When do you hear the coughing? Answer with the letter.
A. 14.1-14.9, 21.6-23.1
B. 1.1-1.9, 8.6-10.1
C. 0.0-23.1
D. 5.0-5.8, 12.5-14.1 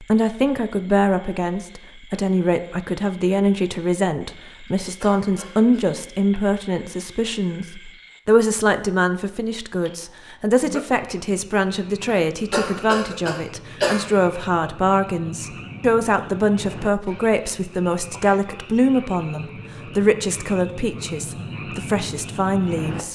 D.